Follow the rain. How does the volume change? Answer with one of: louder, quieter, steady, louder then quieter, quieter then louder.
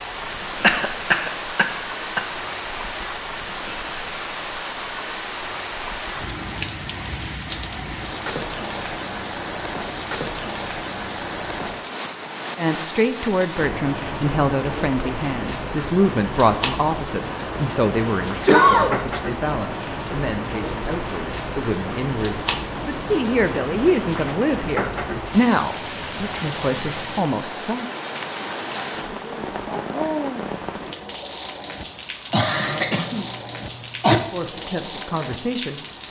steady.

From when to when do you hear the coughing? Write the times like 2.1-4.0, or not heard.
0.6-2.2, 18.4-18.9, 32.3-34.2.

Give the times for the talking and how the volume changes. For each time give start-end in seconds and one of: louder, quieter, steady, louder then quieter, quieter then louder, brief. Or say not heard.
12.6-27.9 quieter then louder
34.3-35.9 brief.